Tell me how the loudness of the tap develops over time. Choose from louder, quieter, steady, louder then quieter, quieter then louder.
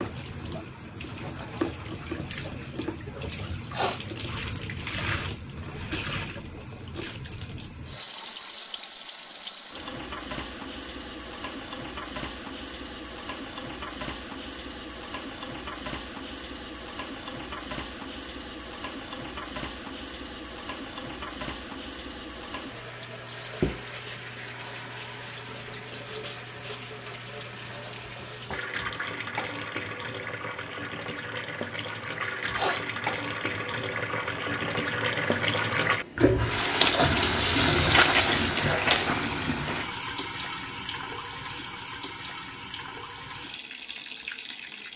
louder.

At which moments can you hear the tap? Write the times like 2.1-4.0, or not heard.
0.0-44.9.